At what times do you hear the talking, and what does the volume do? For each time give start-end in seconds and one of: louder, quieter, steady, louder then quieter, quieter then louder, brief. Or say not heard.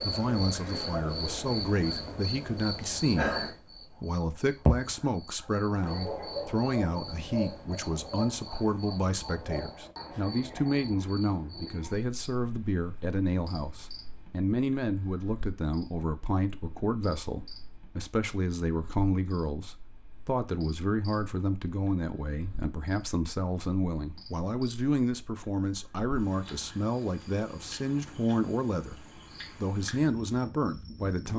0.0-31.3 steady.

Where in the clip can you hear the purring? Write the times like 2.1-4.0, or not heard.
not heard.